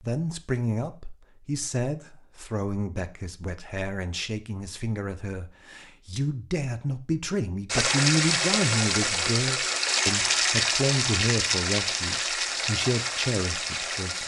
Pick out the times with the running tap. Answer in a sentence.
The running tap can be heard from 7.7 to 14.2 s.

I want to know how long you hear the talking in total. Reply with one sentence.
The talking can be heard for 14 seconds in total.